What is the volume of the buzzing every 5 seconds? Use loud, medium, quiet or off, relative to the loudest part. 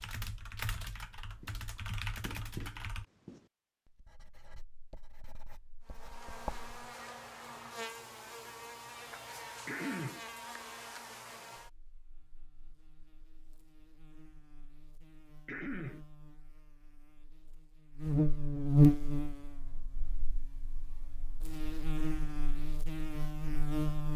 off, quiet, quiet, loud, medium.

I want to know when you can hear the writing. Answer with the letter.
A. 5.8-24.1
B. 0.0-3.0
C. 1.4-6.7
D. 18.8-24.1
C.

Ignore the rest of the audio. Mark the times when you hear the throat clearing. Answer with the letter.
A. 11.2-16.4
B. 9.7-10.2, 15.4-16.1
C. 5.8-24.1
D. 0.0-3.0
B.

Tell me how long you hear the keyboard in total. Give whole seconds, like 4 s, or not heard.
3 s.